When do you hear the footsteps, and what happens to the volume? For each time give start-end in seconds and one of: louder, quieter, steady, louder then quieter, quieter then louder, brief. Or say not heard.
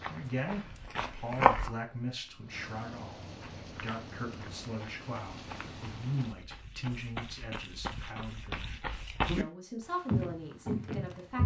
0.0-1.7 brief
3.4-9.4 louder
10.1-11.4 brief.